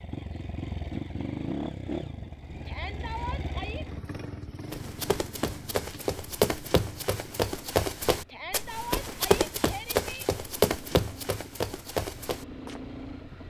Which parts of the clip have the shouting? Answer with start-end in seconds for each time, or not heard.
2.6-3.9, 8.2-10.2.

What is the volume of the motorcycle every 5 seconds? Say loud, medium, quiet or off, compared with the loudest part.
loud, medium, medium.